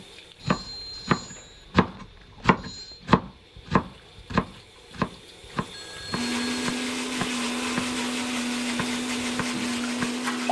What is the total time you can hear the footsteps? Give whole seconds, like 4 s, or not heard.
not heard.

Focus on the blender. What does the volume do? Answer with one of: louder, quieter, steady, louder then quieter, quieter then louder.
steady.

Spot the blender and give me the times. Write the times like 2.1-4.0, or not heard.
6.1-10.4.